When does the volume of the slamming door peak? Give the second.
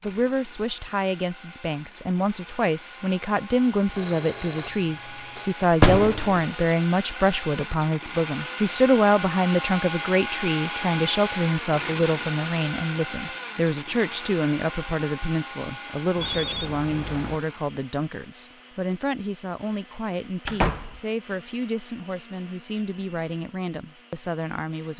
6 s.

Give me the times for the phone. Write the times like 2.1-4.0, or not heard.
3.9-5.5, 16.1-17.4.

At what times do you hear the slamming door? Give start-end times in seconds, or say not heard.
5.8-6.3, 20.4-21.0.